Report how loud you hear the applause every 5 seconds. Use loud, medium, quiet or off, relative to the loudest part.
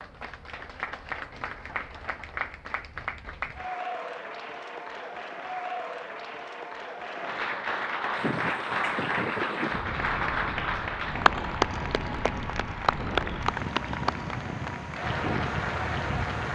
medium, loud, loud, loud.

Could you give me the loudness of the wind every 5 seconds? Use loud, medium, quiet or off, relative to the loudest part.
off, loud, loud, loud.